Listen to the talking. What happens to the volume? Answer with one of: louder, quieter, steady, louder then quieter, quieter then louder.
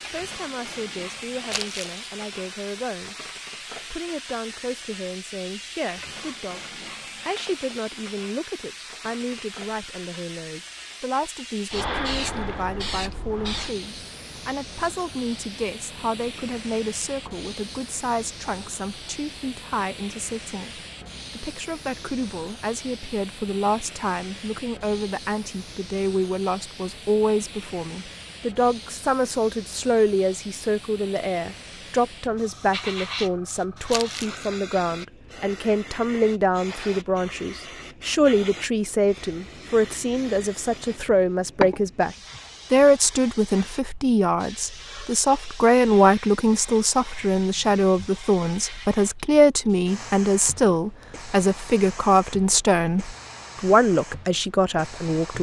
louder.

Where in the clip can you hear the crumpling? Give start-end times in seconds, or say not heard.
1.5-2.0, 33.9-34.5.